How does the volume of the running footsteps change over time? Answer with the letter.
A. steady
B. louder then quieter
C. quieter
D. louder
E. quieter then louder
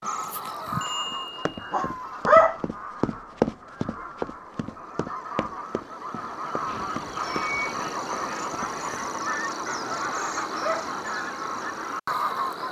B.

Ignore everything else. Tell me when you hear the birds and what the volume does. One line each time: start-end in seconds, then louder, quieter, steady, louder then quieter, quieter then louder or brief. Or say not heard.
0.0-12.6 quieter then louder.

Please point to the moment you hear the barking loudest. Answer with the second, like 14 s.
2 s.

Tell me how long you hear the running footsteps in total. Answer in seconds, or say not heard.
8 s.